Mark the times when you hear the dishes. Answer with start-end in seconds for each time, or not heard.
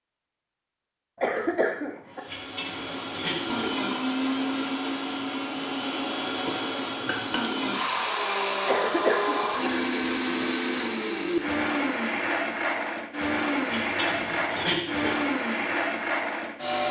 2.2-3.8, 6.3-8.0, 13.7-15.2.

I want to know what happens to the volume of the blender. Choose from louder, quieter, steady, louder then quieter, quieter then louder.
steady.